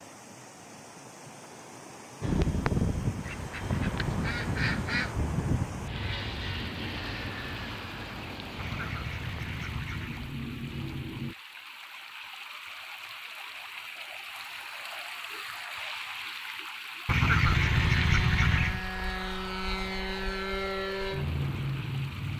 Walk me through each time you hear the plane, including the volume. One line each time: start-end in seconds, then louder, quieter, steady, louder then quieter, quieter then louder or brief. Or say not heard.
2.2-11.3 quieter
17.4-22.3 steady.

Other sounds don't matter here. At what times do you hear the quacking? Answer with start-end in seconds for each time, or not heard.
3.2-5.2, 8.6-10.2, 17.1-18.9.